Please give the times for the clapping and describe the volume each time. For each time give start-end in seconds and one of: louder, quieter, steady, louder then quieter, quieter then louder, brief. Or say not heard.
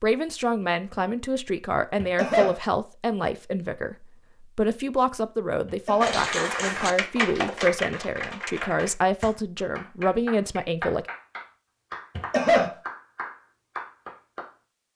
6.0-14.5 quieter.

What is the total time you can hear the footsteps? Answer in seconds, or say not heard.
not heard.